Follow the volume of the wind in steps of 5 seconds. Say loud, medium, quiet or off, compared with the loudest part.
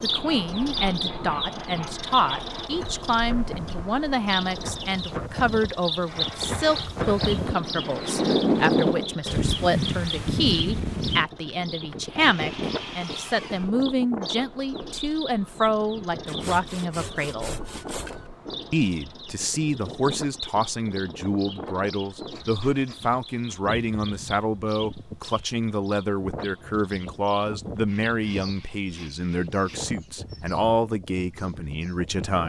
quiet, loud, medium, quiet, quiet, quiet, quiet.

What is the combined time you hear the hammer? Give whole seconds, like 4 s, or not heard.
not heard.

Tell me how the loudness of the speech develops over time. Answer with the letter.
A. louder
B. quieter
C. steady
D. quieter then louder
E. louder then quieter
C.